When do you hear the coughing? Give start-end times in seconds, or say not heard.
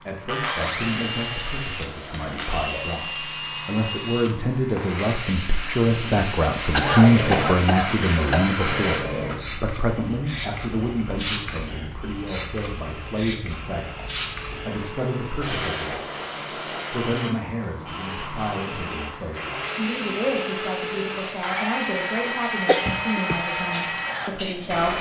6.7-8.5, 22.6-23.4.